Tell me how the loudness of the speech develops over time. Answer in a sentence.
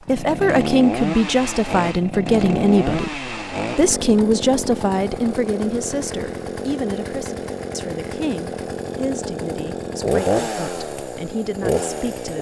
The volume of the speech goes down.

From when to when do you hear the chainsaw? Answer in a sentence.
The chainsaw can be heard from 0.1 to 12.3 s.